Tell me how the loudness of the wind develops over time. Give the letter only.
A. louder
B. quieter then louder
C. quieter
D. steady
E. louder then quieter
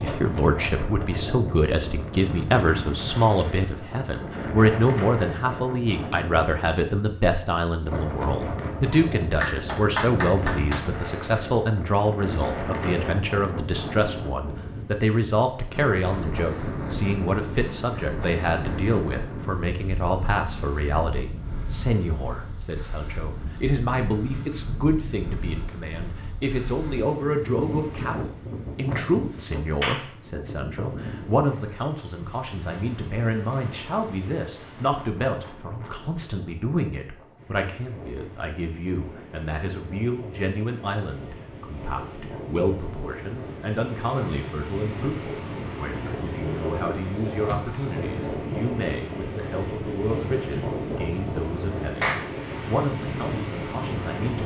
B.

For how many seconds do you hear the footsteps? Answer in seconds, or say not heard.
not heard.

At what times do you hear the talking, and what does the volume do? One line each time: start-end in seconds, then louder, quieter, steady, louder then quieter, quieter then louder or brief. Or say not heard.
0.0-54.4 quieter.